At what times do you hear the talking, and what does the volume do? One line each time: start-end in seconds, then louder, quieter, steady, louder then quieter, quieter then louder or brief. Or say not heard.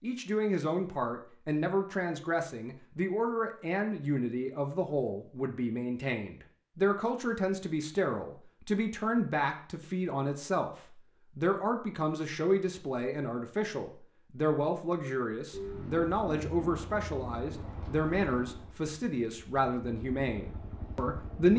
0.0-21.5 steady.